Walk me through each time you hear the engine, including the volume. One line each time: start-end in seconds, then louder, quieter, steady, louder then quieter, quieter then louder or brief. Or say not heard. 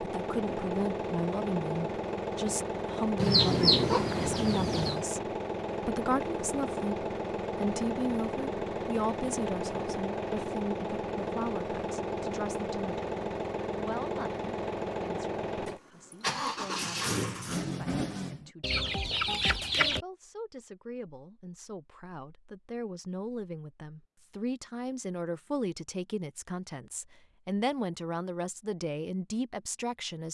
0.0-18.5 steady.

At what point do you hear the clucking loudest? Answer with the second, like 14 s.
4 s.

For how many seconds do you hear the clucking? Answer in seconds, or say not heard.
3 s.